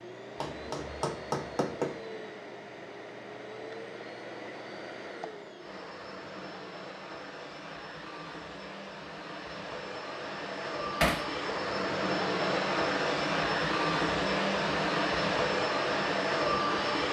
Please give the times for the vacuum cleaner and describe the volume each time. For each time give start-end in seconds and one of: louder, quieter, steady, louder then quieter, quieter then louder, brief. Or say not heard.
0.0-17.0 louder.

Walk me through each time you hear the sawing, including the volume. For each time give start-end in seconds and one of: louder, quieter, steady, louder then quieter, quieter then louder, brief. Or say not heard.
not heard.